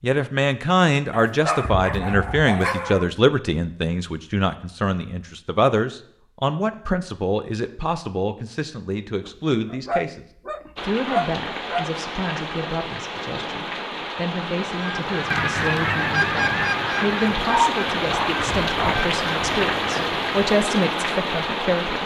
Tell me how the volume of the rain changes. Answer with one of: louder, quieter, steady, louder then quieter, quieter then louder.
louder.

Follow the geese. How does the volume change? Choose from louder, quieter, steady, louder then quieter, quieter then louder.
quieter.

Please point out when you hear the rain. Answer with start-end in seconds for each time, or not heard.
10.8-22.0.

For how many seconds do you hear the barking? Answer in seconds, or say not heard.
6 s.